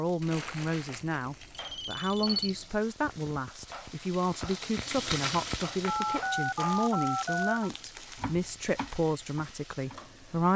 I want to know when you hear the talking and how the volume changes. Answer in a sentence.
The talking can be heard from 0.0 to 10.5 s, at a steady volume.